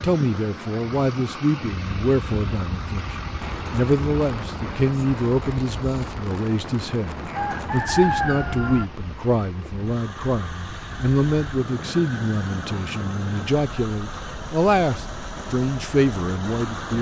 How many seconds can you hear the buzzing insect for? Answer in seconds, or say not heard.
not heard.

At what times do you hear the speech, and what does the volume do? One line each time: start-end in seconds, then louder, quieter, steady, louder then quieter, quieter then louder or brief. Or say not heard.
0.0-16.9 steady.